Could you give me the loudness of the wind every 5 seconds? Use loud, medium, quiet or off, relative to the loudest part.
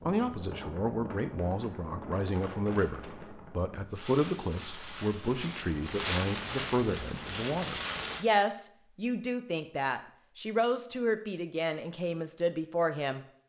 medium, loud, off.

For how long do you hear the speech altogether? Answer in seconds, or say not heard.
13 s.